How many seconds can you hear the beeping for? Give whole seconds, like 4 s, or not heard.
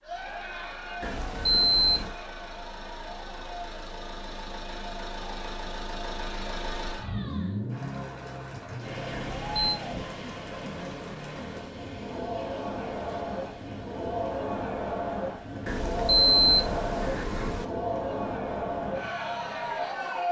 4 s.